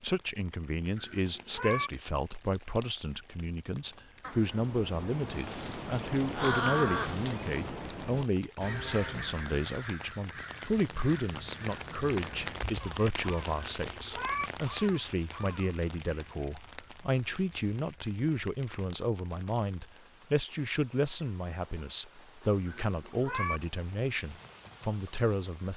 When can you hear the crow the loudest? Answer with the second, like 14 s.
7 s.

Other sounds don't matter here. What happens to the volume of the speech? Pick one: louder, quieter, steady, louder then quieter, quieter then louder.
steady.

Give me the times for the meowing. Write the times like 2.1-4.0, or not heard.
0.9-1.9, 13.6-14.5, 22.6-23.6.